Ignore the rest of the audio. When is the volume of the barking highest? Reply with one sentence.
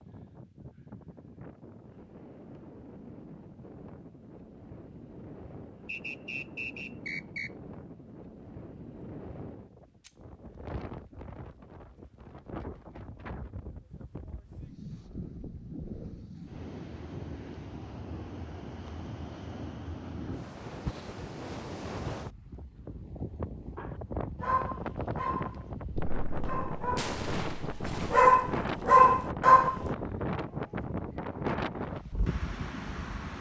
The volume of the barking peaks at 29 seconds.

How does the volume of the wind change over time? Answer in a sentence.
The loudness of the wind goes up.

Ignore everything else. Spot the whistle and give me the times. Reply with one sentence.
The whistle can be heard from 5.8 to 7.5 s.